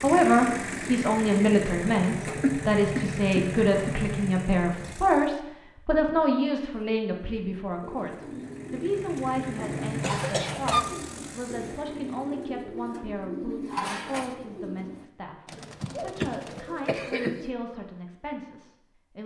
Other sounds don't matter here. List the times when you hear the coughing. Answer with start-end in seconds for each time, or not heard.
2.4-4.0, 10.0-10.8, 15.6-17.4.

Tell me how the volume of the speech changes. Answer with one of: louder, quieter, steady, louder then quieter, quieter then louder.
quieter.